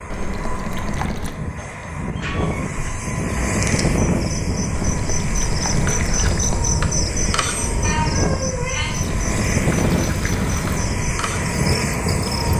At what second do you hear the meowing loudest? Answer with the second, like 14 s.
8 s.